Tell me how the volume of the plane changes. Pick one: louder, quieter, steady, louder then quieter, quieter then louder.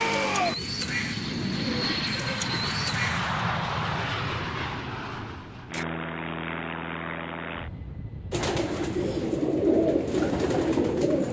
quieter.